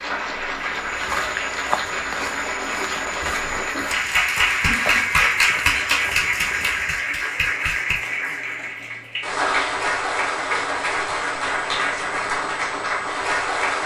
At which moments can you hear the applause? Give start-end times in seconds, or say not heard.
0.0-13.8.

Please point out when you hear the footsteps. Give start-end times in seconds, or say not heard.
0.6-7.0.